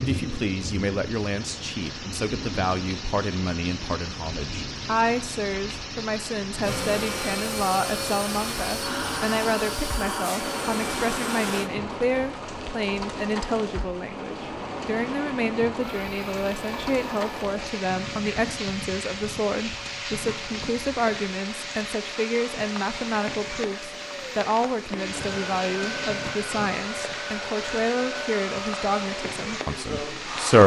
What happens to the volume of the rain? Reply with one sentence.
The volume of the rain stays about the same.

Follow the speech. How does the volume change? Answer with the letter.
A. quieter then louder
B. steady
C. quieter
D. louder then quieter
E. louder
B.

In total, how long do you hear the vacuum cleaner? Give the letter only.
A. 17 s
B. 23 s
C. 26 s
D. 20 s
D.